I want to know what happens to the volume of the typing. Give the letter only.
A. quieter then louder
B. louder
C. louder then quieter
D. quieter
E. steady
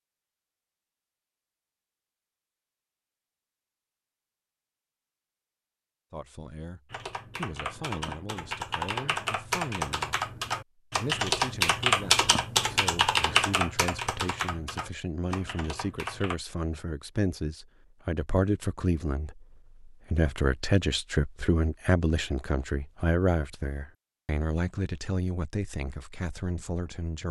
C.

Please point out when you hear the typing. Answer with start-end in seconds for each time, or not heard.
6.9-16.4.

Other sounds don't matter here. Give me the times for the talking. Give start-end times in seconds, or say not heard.
6.1-27.2.